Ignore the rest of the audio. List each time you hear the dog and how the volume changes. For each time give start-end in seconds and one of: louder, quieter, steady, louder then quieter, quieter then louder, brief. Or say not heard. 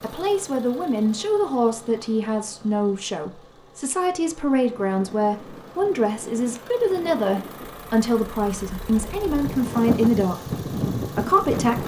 not heard.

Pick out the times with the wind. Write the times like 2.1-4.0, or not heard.
4.7-11.8.